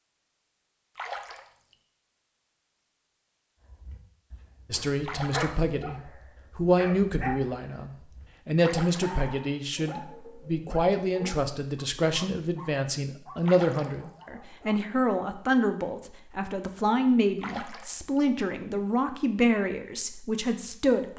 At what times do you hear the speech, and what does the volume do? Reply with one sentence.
You can hear the speech from 4.7 to 21.1 s, at a steady volume.